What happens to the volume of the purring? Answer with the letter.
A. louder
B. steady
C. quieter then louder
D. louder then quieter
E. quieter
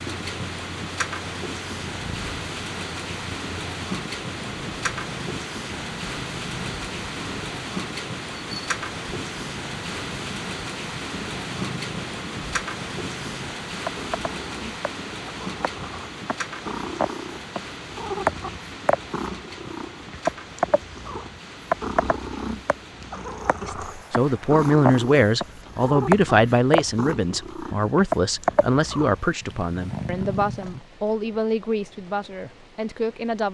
A.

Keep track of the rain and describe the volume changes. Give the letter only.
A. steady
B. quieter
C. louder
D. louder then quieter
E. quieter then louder
B.